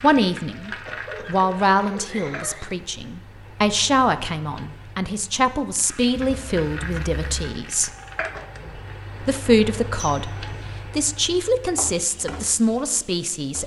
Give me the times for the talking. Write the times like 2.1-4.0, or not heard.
0.0-7.9, 9.2-10.3, 10.9-13.6.